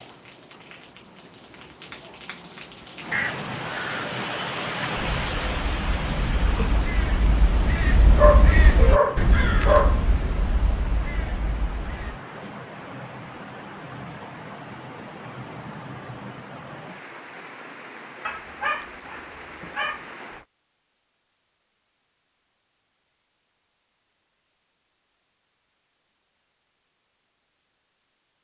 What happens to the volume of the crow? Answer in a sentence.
The loudness of the crow goes up, then down.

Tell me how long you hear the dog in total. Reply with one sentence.
The dog can be heard for 4 seconds in total.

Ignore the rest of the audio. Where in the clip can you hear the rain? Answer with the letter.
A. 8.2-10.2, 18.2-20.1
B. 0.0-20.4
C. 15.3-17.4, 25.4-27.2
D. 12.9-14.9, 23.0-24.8
B.